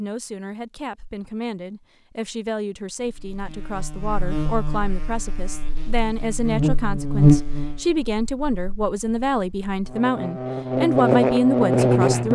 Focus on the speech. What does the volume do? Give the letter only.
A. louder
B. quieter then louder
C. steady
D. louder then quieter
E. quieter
A.